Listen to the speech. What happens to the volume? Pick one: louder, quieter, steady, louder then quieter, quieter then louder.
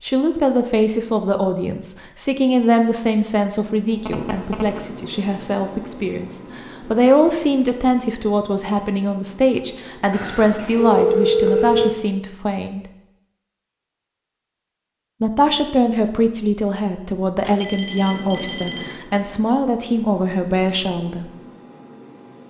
steady.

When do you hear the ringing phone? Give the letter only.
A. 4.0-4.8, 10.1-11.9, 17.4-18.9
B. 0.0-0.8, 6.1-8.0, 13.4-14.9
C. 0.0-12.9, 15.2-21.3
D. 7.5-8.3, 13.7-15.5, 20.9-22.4
A.